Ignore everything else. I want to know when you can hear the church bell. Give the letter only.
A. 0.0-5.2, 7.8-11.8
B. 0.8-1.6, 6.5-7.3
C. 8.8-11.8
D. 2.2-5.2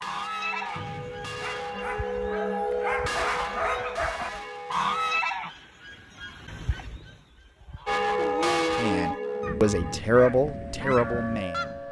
A.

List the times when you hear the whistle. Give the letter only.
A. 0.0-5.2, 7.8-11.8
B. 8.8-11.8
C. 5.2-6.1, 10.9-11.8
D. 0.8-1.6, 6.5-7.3
D.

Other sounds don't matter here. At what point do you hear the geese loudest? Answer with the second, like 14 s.
5 s.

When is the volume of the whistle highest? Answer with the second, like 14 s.
1 s.